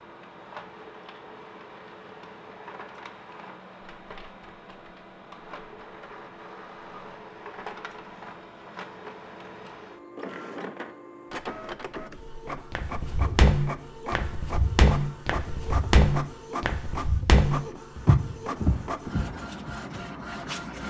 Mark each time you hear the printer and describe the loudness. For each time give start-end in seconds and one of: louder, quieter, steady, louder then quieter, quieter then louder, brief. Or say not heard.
0.0-20.8 louder.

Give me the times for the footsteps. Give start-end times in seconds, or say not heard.
12.7-20.0.